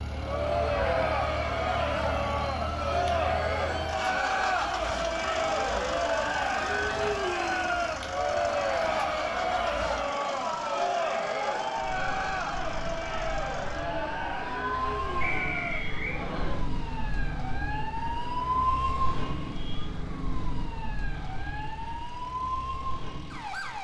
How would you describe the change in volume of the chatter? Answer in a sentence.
The loudness of the chatter goes down.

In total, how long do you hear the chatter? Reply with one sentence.
You can hear the chatter for 17 seconds altogether.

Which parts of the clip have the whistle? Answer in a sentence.
The whistle can be heard from 15.2 to 16.2 s.